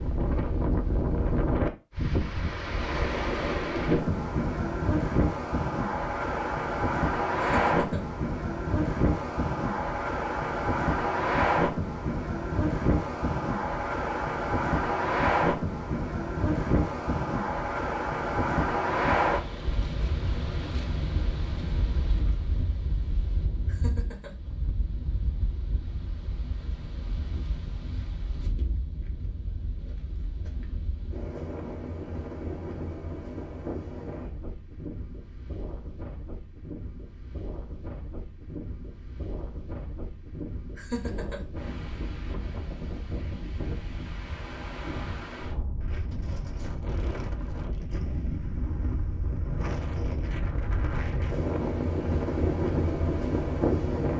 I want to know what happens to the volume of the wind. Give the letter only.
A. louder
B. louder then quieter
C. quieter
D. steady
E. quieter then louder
E.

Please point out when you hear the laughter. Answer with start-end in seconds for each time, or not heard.
7.3-8.1, 23.6-24.4, 40.8-41.4.